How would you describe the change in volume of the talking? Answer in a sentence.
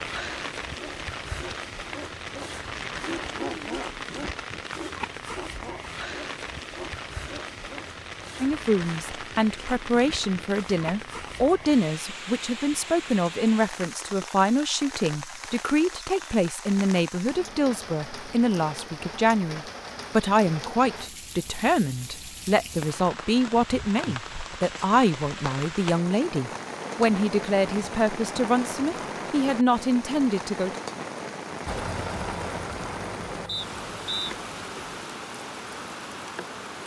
The loudness of the talking stays about the same.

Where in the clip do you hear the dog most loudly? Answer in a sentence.
The volume of the dog peaks at 4 seconds.